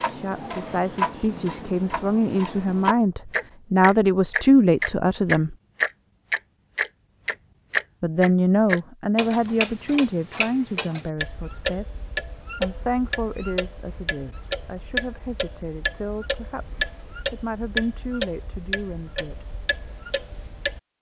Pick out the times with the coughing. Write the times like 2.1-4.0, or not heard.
not heard.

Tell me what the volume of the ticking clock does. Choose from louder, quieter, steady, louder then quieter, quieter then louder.
louder then quieter.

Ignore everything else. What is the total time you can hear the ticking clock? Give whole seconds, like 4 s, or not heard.
21 s.